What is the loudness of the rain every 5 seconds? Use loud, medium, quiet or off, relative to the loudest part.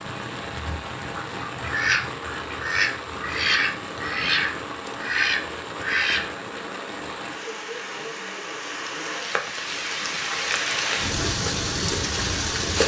medium, medium, loud.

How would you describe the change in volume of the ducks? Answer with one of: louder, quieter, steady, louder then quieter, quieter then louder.
louder.